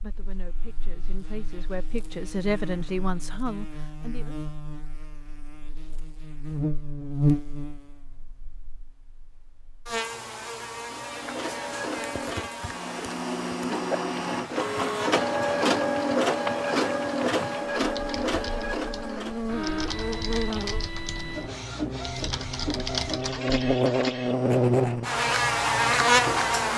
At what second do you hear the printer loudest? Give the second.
16 s.